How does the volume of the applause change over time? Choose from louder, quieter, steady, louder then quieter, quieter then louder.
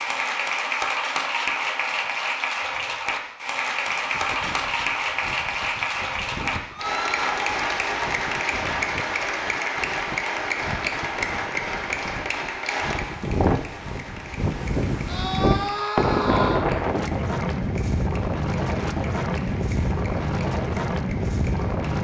quieter.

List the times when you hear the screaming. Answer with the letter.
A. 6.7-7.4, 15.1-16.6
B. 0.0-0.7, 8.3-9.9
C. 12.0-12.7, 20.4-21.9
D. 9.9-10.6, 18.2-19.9
A.